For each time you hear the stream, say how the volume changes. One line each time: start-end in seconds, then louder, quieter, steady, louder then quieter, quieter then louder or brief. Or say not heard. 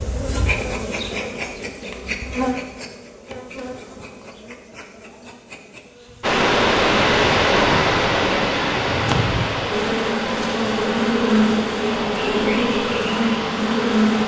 6.2-14.2 quieter.